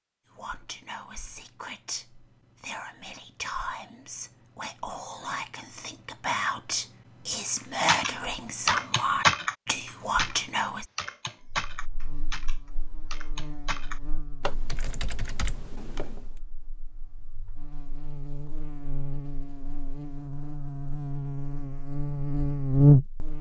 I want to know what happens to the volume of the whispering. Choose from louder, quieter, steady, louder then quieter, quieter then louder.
louder.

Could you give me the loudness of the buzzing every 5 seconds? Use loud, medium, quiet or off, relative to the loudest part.
off, off, quiet, quiet, loud.